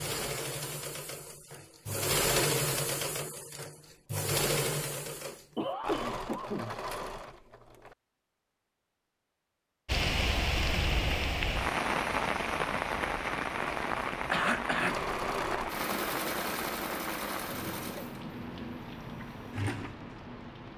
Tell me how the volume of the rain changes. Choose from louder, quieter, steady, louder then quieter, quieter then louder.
quieter.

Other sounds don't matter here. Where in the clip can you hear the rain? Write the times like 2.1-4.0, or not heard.
9.8-20.7.